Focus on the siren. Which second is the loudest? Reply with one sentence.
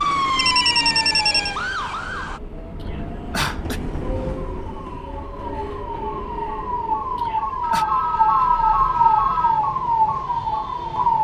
The volume of the siren peaks at 9 seconds.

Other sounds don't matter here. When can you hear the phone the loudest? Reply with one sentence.
The loudest moment of the phone is at 1 second.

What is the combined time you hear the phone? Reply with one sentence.
The phone can be heard for 3 seconds in total.